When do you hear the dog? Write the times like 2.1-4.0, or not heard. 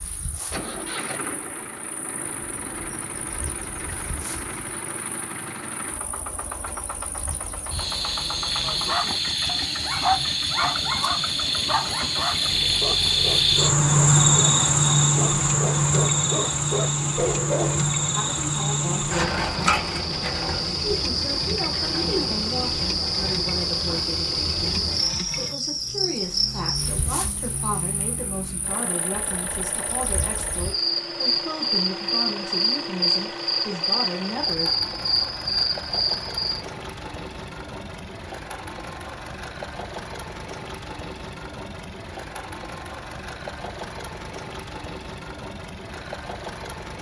8.7-17.9.